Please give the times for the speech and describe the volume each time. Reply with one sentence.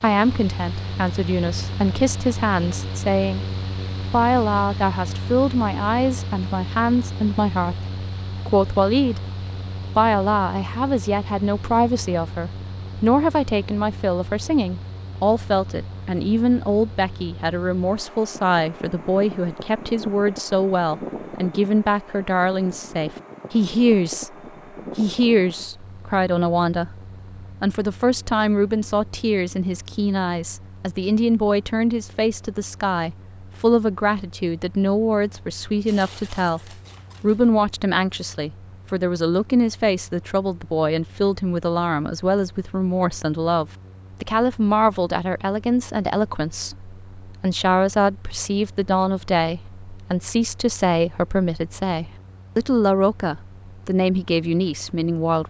You can hear the speech from 0.0 to 9.2 s, at a steady volume; from 9.9 to 24.3 s, at a steady volume; briefly from 24.9 to 27.0 s; from 27.6 to 36.6 s, at a steady volume; and from 37.2 to 55.4 s, at a steady volume.